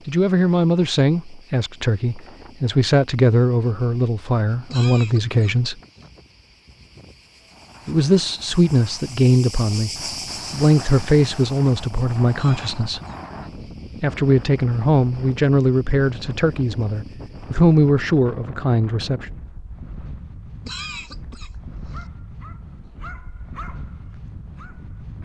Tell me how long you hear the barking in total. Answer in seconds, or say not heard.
3 s.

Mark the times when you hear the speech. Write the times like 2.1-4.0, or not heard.
0.1-5.8, 7.8-9.9, 10.5-13.0, 14.0-19.2.